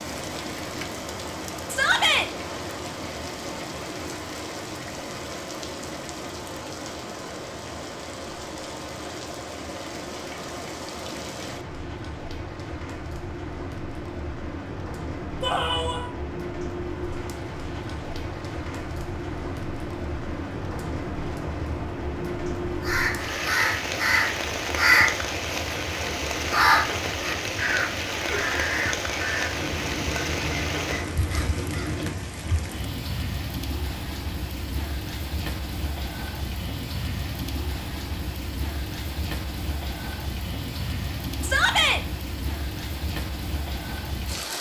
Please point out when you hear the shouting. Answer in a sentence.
The shouting can be heard from 1.7 to 2.3 s, from 15.4 to 16.1 s and from 41.4 to 42.0 s.